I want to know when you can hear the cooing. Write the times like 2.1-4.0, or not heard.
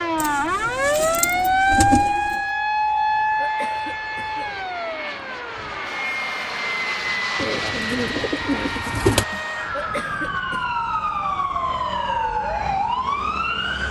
0.1-2.4, 7.3-9.2.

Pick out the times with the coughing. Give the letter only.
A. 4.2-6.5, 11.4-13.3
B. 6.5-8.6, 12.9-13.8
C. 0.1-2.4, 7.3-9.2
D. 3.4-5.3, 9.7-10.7
D.